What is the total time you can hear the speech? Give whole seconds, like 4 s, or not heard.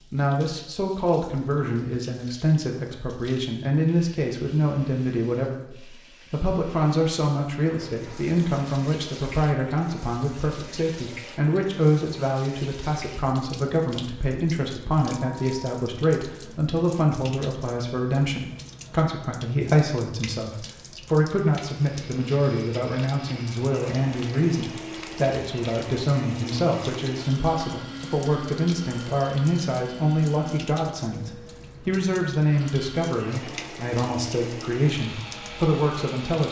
36 s.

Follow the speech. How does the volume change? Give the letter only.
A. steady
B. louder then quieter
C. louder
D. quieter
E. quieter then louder
A.